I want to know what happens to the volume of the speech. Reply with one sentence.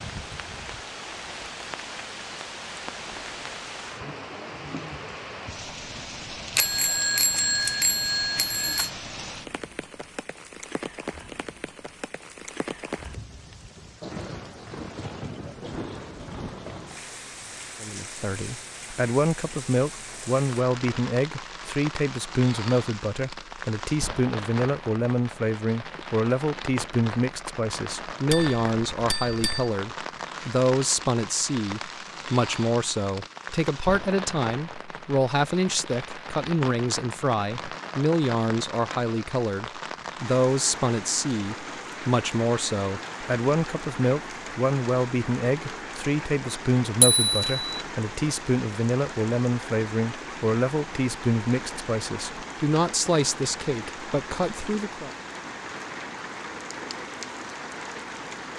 The loudness of the speech stays about the same.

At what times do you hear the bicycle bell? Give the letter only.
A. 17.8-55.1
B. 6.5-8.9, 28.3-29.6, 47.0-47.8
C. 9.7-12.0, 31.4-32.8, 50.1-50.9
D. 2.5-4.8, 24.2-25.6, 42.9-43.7
B.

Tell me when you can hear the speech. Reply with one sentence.
You can hear the speech from 17.8 to 55.1 s.